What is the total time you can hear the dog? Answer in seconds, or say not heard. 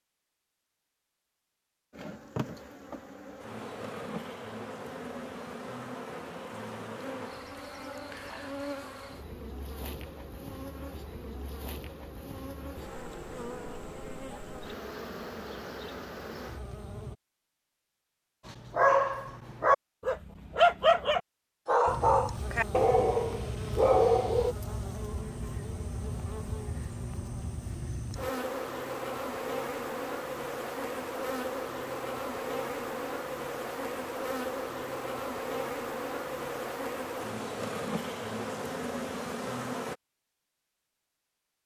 6 s.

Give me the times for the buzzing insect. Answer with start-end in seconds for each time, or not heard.
1.9-17.1, 21.9-40.0.